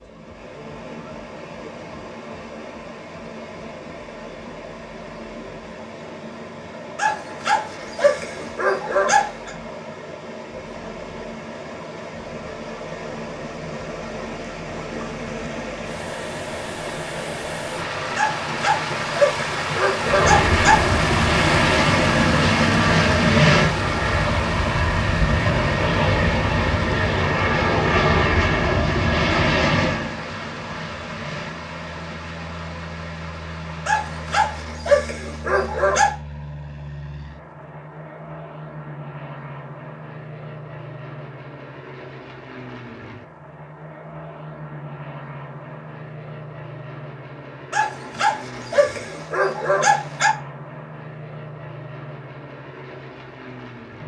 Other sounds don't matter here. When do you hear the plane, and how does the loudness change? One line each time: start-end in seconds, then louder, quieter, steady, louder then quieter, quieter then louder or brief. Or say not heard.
20.0-54.0 quieter.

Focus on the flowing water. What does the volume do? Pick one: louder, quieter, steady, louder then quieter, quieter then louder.
louder then quieter.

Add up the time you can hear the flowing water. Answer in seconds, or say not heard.
35 s.